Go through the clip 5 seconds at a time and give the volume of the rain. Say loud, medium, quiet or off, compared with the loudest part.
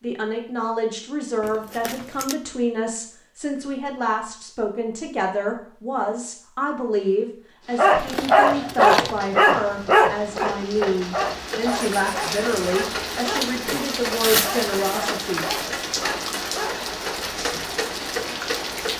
off, quiet, loud, loud.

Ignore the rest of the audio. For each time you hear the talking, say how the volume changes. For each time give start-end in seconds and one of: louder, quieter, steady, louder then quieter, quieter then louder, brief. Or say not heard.
0.0-15.5 steady.